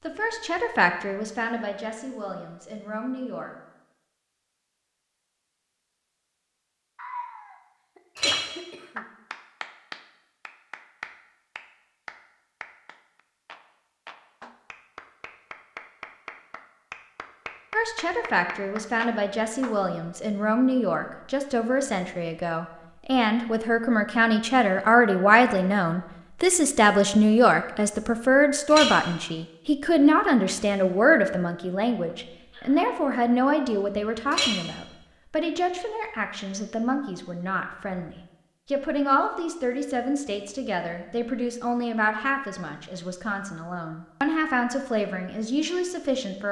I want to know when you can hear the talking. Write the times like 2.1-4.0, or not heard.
0.0-3.5, 17.7-46.4.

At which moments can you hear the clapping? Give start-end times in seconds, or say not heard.
8.3-19.8.